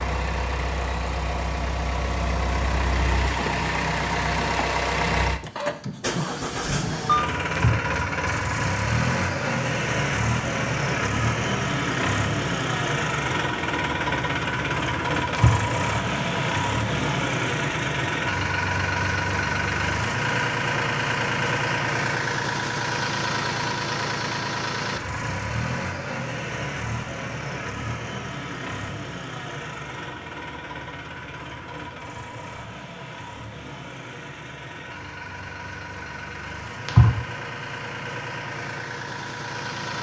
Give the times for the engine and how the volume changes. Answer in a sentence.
You can hear the engine from 0.0 to 39.9 s, getting quieter.